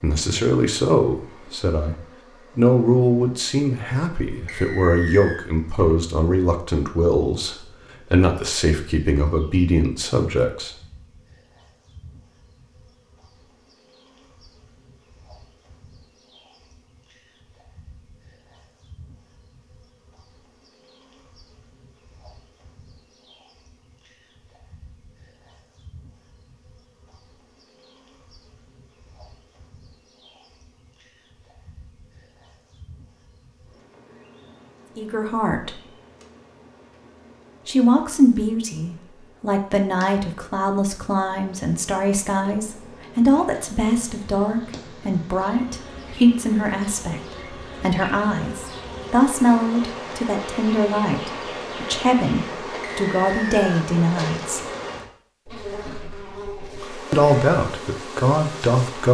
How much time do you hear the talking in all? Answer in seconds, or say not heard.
30 s.